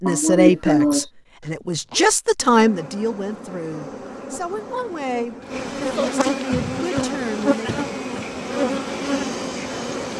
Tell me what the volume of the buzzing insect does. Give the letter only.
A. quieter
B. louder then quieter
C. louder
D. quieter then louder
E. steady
C.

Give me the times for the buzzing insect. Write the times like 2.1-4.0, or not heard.
2.4-10.1.